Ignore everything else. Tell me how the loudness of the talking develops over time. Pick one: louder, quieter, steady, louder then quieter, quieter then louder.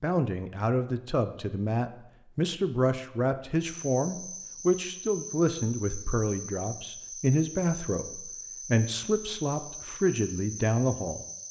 steady.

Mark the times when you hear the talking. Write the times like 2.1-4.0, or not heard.
0.0-11.2.